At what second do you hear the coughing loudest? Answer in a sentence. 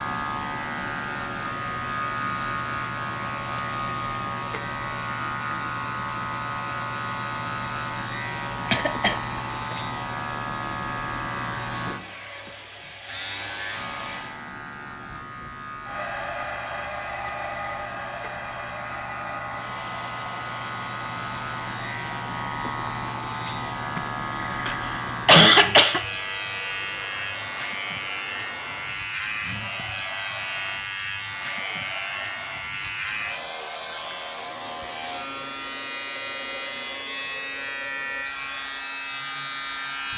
The loudest moment of the coughing is at 25 seconds.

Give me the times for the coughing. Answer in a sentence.
The coughing can be heard from 8.7 to 9.8 s and from 23.9 to 26.0 s.